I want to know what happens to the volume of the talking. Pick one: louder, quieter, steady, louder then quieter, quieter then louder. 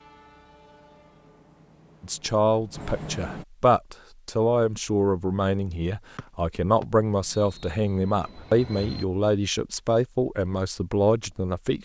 steady.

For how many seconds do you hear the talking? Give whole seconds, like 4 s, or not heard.
10 s.